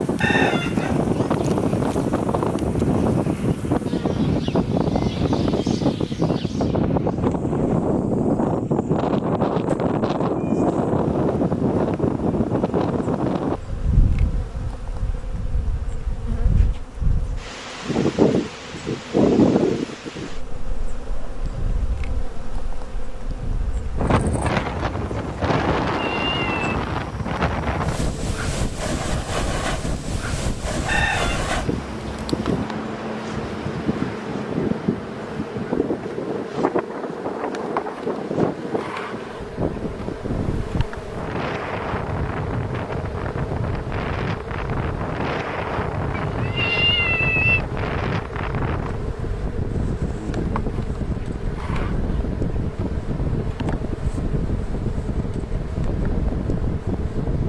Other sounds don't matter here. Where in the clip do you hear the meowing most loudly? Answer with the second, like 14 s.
47 s.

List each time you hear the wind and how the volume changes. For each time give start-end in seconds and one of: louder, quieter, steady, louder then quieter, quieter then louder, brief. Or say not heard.
0.0-57.4 quieter.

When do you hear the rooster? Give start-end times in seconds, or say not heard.
0.2-1.4, 30.9-32.1.